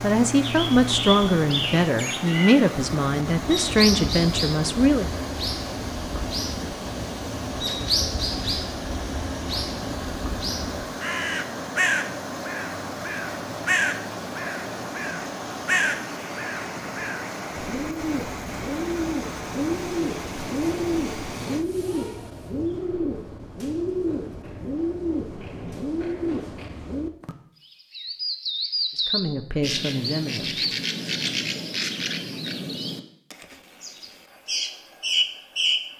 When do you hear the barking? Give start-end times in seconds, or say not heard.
not heard.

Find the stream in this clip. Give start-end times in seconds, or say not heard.
0.0-21.6.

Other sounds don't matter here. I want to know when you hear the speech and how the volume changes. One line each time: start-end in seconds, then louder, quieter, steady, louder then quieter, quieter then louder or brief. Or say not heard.
0.0-5.1 steady
28.9-30.8 brief.